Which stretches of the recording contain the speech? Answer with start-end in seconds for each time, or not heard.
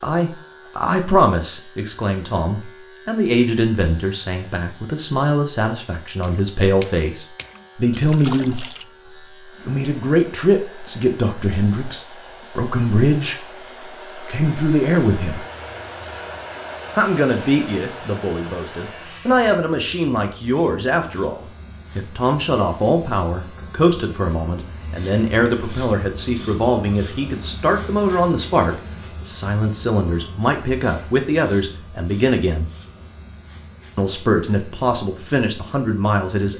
0.0-8.7, 9.7-13.4, 14.2-15.4, 16.9-32.7, 34.0-36.5.